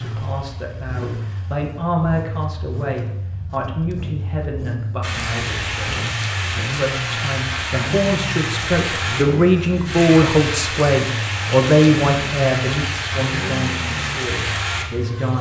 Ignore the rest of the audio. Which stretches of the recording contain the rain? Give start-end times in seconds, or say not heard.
5.0-15.3.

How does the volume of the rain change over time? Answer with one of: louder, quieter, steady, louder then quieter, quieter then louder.
steady.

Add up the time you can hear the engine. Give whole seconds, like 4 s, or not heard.
15 s.